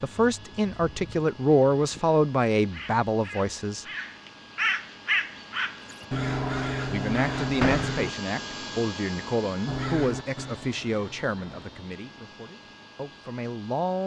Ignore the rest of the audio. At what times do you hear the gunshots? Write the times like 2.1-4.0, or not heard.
7.6-8.0.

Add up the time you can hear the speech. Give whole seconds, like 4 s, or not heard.
11 s.